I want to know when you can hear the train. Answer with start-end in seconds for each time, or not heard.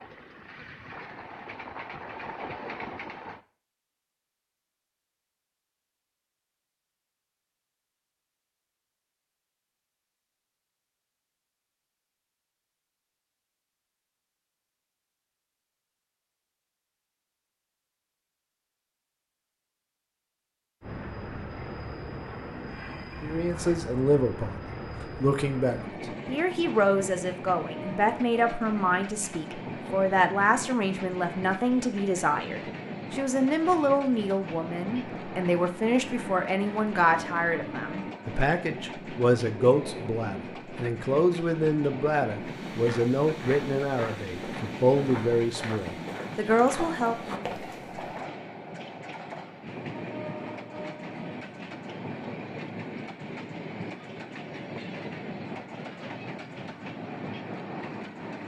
0.0-3.4, 20.8-58.4.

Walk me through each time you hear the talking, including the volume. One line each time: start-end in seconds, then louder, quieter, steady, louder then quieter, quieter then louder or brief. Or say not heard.
23.2-47.5 steady.